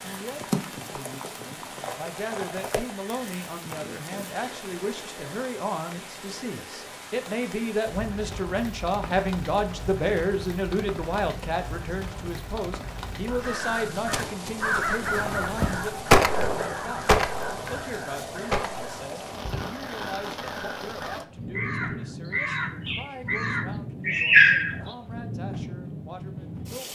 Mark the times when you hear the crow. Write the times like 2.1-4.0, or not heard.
13.3-24.9.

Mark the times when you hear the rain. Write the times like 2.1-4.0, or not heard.
0.0-26.9.